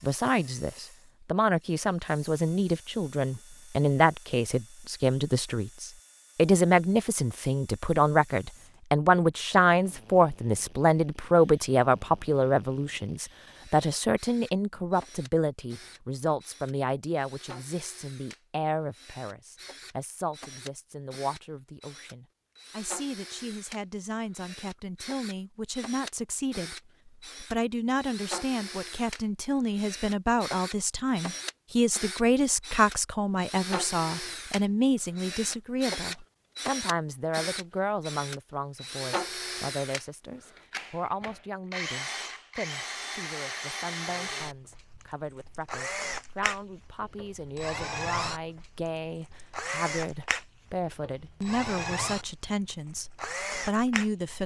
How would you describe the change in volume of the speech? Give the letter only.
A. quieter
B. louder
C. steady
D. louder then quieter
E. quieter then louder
A.